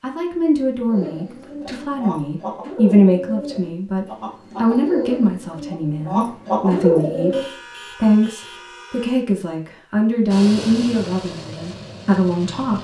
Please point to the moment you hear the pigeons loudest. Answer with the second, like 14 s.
7 s.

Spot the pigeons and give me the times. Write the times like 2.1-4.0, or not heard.
0.9-7.5.